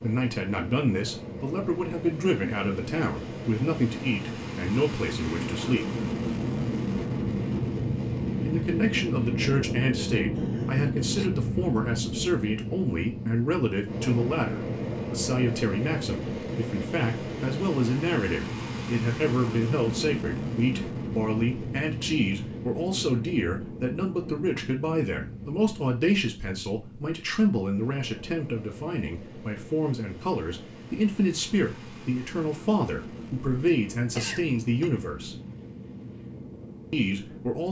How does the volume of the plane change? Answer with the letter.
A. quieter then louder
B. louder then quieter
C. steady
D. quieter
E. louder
D.